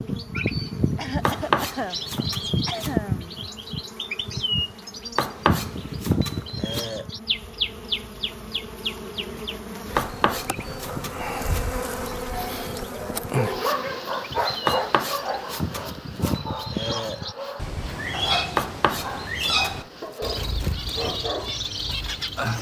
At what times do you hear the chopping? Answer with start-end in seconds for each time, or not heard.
1.2-3.0, 5.2-6.9, 9.9-11.7, 14.7-16.4, 18.6-19.8.